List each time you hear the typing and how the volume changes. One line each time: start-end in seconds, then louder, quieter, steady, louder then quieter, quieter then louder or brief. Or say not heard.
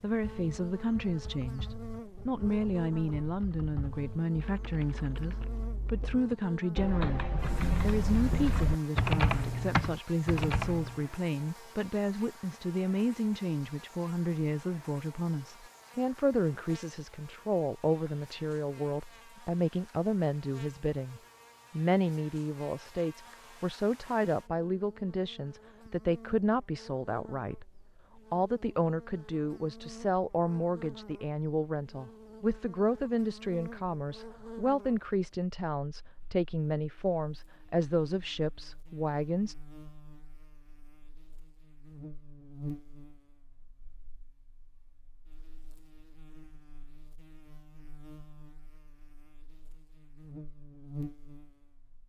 0.1-11.1 louder.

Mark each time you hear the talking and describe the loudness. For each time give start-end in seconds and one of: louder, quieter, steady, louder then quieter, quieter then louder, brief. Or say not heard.
0.0-39.5 steady.